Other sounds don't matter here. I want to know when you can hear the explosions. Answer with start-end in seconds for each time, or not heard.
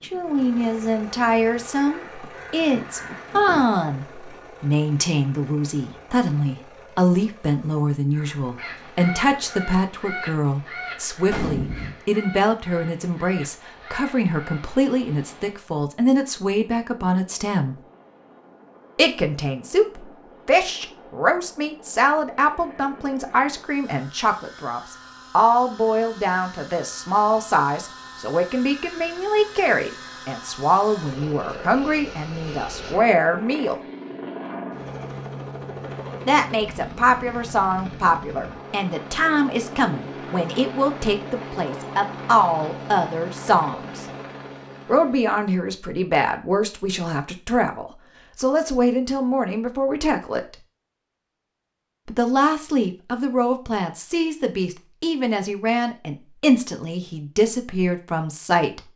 11.2-11.9.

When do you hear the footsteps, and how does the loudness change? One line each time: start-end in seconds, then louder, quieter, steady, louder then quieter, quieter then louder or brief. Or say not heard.
not heard.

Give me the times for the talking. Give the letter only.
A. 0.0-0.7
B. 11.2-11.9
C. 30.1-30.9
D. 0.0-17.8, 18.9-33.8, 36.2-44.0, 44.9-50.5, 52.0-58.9
D.